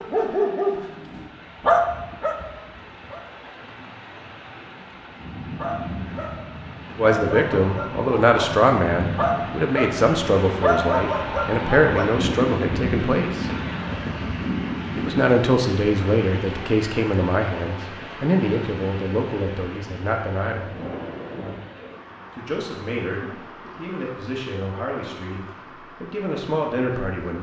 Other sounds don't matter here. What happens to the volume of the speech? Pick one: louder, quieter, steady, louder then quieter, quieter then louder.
quieter.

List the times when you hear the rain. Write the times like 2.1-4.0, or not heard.
0.0-27.3.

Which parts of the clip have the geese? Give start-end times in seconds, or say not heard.
not heard.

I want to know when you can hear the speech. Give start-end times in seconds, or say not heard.
7.0-13.4, 14.9-20.8, 22.4-27.3.